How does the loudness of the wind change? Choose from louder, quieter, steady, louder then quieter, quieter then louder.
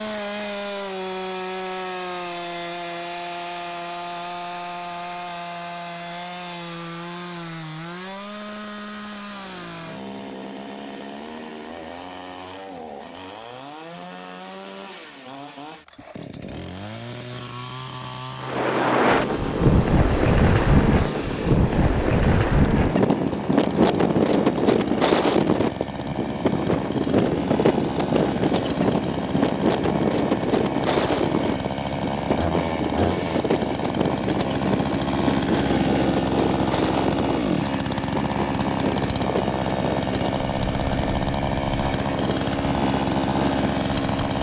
quieter.